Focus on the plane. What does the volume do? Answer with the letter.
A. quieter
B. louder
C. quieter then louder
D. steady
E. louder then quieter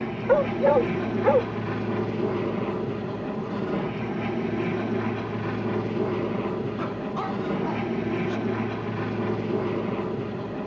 D.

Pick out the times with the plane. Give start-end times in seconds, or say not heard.
0.0-10.6.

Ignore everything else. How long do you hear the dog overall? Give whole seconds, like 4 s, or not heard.
3 s.